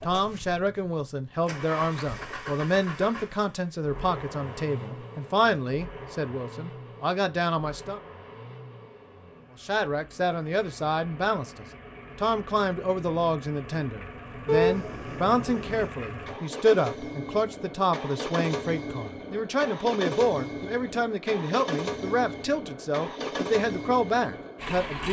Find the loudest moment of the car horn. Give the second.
15 s.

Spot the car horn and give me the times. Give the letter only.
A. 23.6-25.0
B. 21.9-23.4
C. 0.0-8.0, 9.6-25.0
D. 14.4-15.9
D.